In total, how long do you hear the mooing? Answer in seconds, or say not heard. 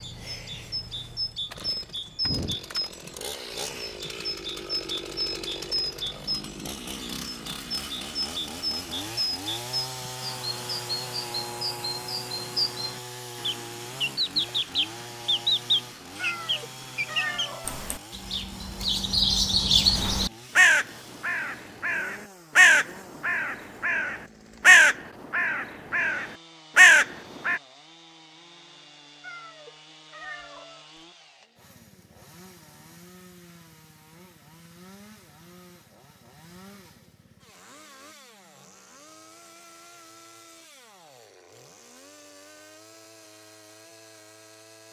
not heard.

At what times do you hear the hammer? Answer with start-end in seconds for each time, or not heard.
not heard.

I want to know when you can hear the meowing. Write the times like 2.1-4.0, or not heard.
16.1-17.8, 29.2-31.0.